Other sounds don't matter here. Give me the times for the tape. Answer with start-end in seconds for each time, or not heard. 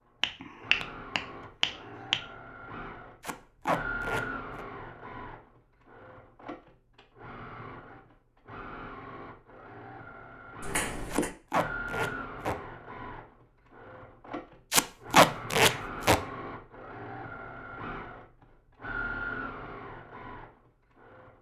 3.2-4.7, 11.1-12.6, 14.7-16.2.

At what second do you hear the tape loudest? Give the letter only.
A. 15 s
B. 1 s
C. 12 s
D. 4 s
A.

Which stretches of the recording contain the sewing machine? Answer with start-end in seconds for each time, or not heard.
0.0-21.3.